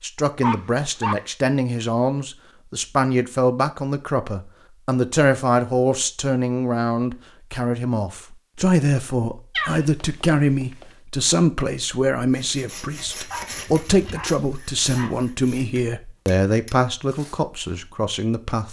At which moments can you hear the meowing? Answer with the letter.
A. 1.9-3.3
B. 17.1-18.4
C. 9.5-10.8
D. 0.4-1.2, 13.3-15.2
C.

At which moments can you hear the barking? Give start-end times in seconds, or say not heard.
0.4-1.2, 13.3-15.2.